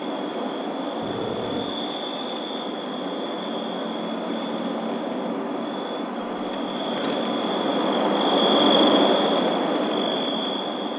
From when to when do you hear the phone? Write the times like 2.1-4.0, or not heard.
1.0-1.8, 6.3-7.2.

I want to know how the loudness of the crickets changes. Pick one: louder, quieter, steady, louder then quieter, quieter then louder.
louder.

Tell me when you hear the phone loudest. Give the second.
1 s.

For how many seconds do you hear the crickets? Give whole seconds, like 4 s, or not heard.
11 s.